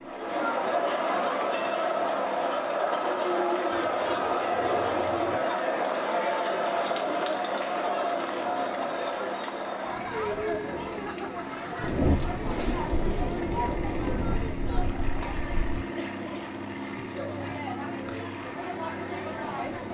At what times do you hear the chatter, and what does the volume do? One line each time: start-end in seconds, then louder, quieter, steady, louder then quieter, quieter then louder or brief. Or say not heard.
0.0-19.9 quieter.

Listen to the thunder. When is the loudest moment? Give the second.
12 s.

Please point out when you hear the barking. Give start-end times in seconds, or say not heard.
not heard.